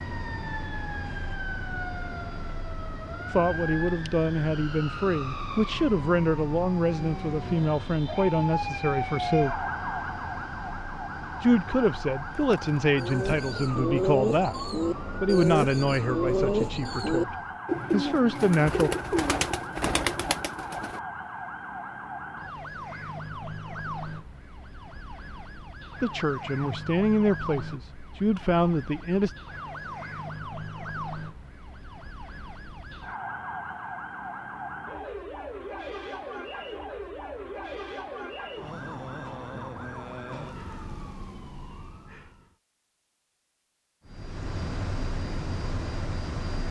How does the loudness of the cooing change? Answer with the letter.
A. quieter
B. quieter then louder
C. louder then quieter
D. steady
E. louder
D.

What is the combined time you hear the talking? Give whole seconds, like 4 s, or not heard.
17 s.